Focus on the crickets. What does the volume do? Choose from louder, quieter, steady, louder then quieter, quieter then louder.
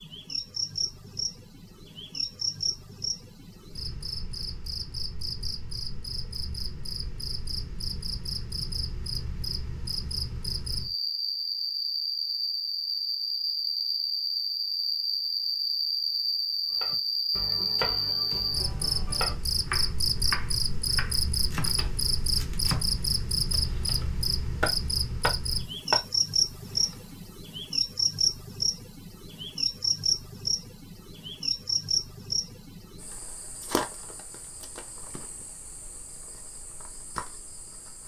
louder then quieter.